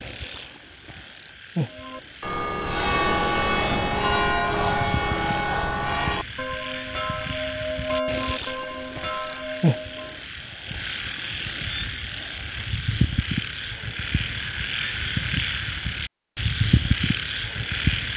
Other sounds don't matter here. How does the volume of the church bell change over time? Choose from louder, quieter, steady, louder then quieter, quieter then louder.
quieter.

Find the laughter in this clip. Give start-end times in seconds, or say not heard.
not heard.